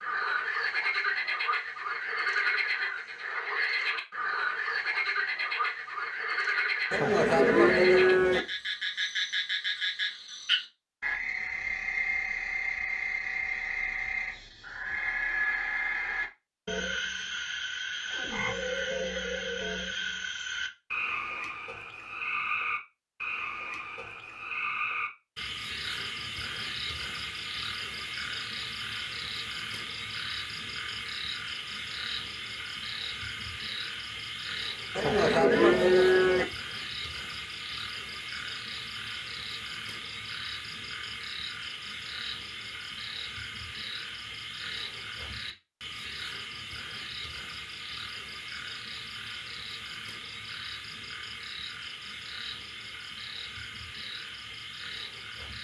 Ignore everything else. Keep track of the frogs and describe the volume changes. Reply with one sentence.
The loudness of the frogs goes down.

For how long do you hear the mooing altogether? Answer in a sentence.
You can hear the mooing for 3 seconds altogether.